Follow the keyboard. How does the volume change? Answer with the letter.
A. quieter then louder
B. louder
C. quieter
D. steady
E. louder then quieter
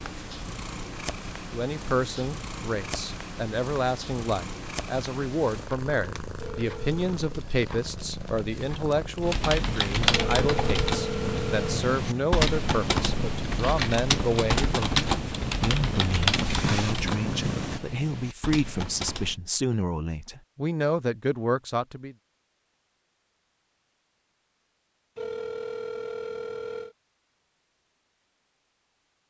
C.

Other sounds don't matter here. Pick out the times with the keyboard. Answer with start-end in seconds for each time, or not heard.
9.2-19.4.